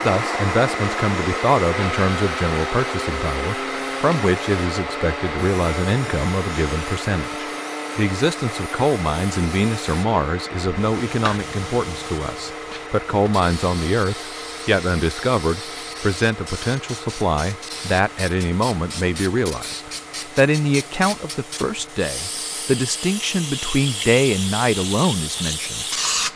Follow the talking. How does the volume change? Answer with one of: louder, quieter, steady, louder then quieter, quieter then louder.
steady.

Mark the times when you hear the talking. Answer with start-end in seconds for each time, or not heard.
0.0-26.3.